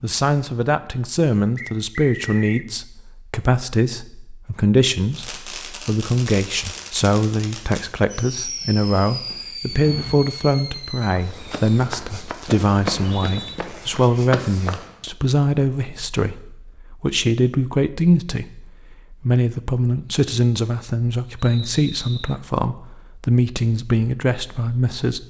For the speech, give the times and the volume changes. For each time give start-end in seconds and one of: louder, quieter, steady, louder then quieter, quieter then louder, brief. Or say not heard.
0.0-25.2 steady.